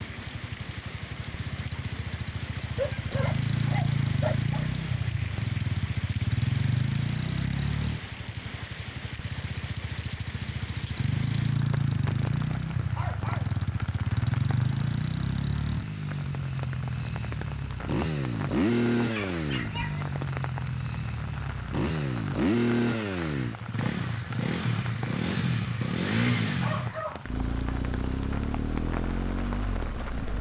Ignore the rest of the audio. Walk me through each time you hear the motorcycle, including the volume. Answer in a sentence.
You can hear the motorcycle from 0.0 to 30.3 s, at a steady volume.